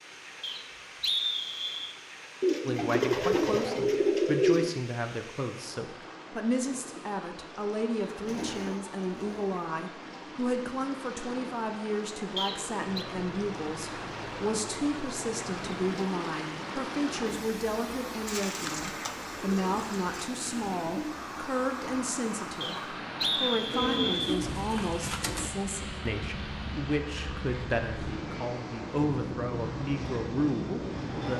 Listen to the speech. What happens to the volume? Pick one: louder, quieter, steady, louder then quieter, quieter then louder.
steady.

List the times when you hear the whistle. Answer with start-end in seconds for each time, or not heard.
0.4-1.9, 12.3-13.1, 22.6-24.4.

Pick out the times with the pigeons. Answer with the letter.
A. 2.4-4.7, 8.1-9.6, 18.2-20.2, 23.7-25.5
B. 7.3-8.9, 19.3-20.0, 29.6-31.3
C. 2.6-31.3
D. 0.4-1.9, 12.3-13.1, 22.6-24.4
A.